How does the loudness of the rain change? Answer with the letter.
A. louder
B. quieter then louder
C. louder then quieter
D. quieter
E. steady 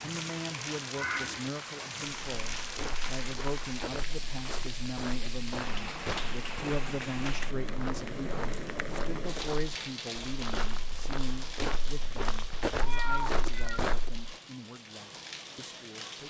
D.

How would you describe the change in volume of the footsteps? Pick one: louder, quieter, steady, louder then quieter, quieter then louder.
louder.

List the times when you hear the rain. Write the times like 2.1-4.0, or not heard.
0.0-16.2.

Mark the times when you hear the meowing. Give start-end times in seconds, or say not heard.
0.9-1.4, 12.8-13.8.